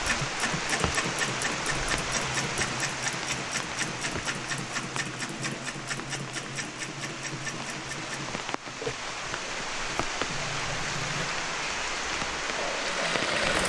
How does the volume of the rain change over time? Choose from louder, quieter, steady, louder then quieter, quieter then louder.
quieter then louder.